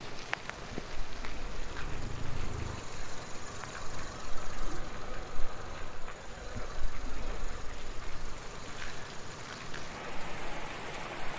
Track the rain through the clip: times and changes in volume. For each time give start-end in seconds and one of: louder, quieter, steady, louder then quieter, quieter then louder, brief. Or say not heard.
0.0-11.3 quieter then louder.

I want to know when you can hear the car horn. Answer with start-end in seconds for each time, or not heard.
1.7-2.9.